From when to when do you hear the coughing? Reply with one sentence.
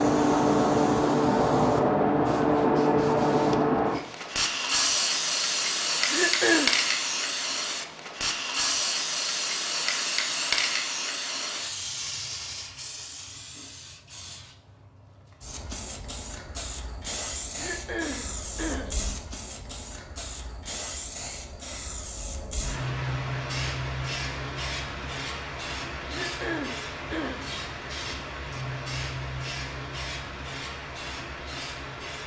The coughing can be heard from 6.0 to 6.8 s, from 17.6 to 18.9 s and from 26.1 to 27.4 s.